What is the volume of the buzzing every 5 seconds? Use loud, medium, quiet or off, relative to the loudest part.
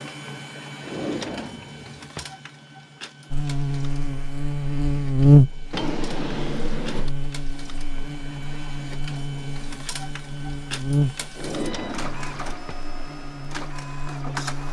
medium, loud, medium.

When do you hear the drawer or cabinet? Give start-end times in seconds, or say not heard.
0.8-2.3, 5.7-7.1, 11.3-12.8.